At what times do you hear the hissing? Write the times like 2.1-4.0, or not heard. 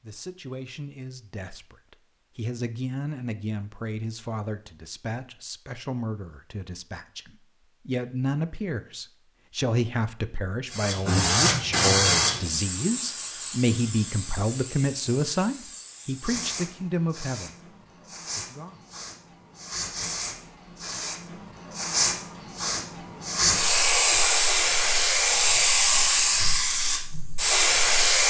10.7-28.2.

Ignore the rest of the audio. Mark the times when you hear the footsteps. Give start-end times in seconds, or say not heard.
not heard.